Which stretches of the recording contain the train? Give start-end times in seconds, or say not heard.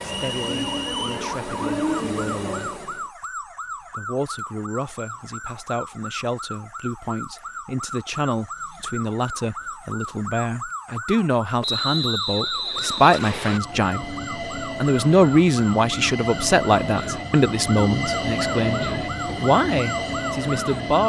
0.0-3.0, 13.4-21.0.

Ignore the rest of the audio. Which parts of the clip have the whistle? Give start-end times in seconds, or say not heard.
0.1-1.1, 11.6-13.6.